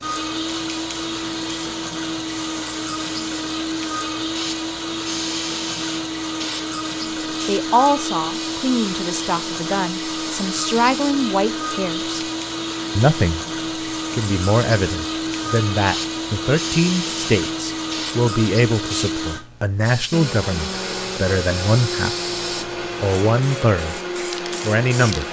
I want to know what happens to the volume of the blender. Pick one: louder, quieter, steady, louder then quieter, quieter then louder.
steady.